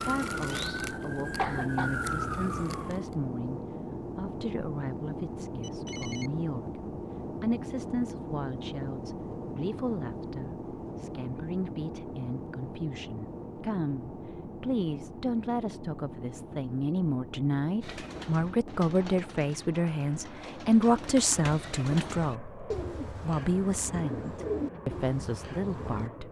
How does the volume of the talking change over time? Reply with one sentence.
The loudness of the talking goes up.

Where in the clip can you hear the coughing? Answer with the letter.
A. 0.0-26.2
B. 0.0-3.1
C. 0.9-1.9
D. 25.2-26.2
C.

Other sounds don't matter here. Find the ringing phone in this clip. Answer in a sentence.
You can hear the ringing phone from 5.6 to 6.3 s.